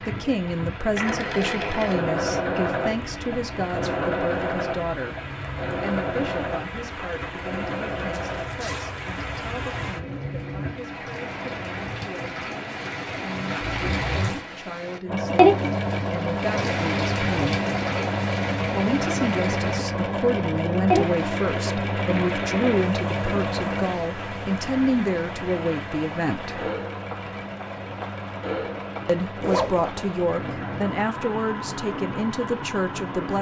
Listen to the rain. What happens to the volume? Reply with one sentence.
The loudness of the rain goes up, then down.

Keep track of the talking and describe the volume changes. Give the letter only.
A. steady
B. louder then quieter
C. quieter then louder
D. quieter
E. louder
C.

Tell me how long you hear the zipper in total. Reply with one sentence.
You can hear the zipper for 2 seconds altogether.